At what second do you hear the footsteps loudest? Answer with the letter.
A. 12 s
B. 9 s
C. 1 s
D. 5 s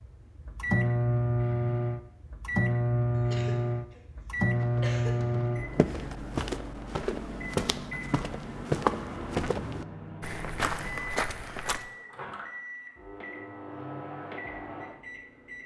B.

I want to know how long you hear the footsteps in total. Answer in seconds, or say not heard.
7 s.